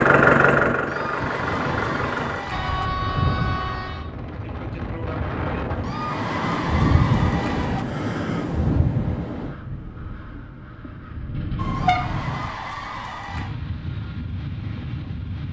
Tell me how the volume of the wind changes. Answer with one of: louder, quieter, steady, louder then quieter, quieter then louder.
louder then quieter.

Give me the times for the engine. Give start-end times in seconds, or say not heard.
0.0-2.5.